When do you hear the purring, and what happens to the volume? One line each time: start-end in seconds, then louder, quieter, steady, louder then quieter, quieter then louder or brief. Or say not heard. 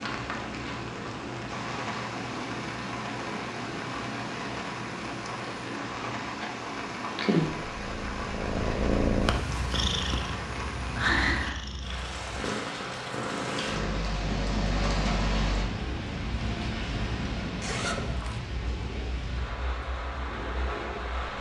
0.0-21.3 louder then quieter.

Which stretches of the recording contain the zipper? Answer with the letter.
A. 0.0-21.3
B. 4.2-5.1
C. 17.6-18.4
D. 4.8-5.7
C.